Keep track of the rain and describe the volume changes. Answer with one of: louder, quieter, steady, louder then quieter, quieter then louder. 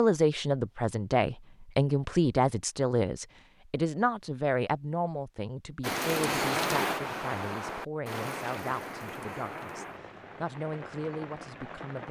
quieter.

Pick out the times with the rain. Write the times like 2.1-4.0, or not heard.
5.8-12.0.